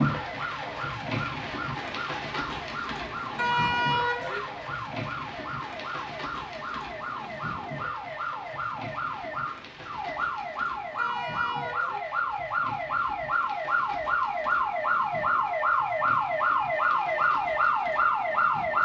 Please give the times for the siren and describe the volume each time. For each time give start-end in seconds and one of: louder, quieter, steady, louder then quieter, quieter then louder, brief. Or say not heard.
0.0-18.8 louder.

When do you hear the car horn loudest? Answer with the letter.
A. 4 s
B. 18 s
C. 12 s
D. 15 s
A.